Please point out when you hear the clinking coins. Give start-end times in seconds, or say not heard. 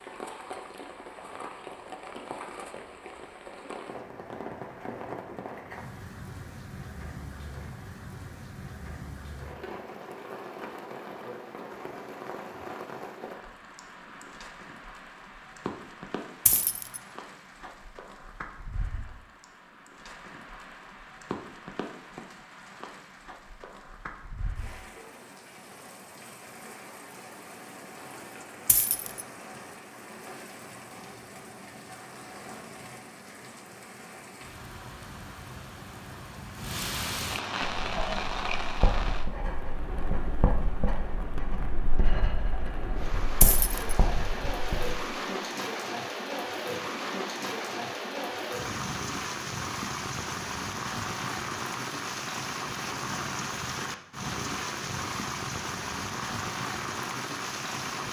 16.4-17.0, 28.6-29.2, 43.4-43.9.